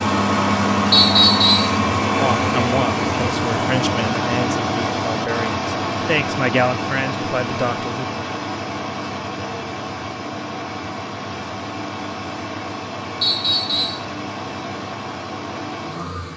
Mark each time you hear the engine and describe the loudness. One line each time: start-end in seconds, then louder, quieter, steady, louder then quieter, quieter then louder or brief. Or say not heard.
0.0-16.3 quieter.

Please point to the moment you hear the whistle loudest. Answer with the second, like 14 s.
1 s.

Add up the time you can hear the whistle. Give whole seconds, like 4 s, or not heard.
2 s.